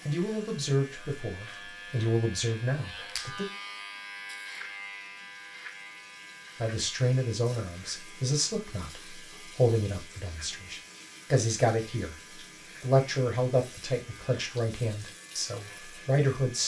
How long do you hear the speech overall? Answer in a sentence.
The speech can be heard for 13 seconds in total.